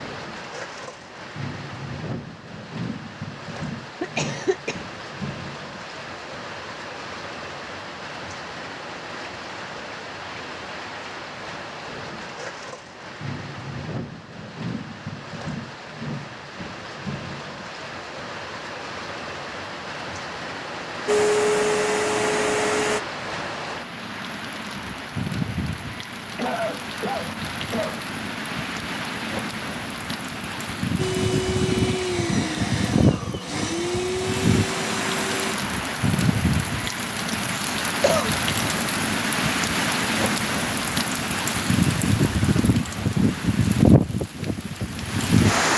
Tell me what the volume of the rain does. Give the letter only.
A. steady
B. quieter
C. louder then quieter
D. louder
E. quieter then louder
D.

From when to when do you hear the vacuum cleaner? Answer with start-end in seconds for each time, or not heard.
21.1-23.0, 30.9-35.5.